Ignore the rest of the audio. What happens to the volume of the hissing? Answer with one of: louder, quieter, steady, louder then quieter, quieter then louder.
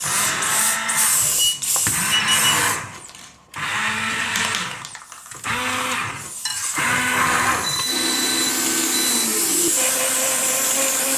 quieter then louder.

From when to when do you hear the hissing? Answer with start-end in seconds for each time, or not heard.
0.0-11.1.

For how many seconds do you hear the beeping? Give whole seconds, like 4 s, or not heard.
3 s.